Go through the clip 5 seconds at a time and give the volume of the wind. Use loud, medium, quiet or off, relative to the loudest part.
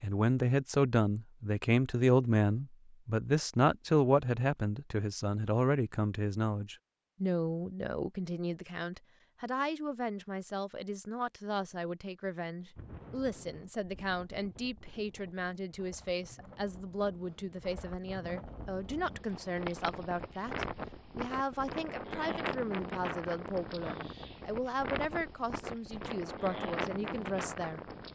off, off, quiet, medium, loud, loud.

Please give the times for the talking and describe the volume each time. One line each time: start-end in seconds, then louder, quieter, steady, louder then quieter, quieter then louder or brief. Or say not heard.
0.0-28.1 quieter.